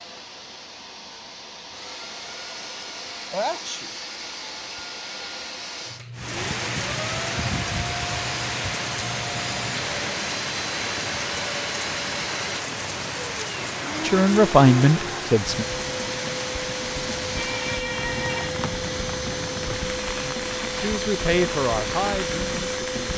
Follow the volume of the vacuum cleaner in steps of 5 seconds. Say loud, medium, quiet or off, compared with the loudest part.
medium, medium, loud, loud, loud.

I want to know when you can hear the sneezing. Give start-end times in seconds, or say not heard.
3.3-4.0, 17.4-18.6.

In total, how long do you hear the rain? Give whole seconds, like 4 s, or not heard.
17 s.